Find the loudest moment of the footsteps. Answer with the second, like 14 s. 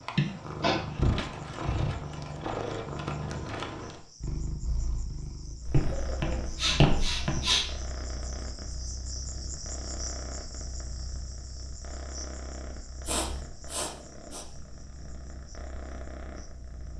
7 s.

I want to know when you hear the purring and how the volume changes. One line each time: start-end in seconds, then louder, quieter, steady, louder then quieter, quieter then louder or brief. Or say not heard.
0.0-16.9 quieter.